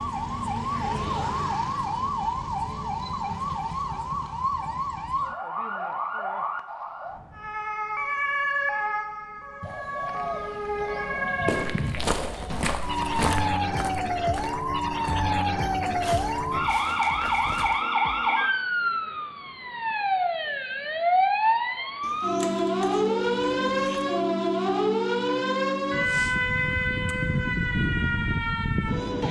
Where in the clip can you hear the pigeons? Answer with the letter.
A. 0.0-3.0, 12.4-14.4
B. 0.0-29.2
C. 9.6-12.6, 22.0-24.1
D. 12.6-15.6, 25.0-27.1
C.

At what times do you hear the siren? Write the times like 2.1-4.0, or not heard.
0.0-29.2.